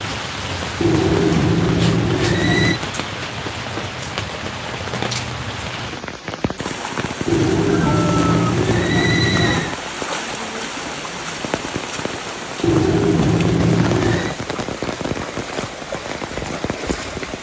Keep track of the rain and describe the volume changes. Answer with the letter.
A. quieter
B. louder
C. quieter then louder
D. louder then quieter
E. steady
E.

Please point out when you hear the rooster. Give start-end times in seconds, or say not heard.
7.7-8.5.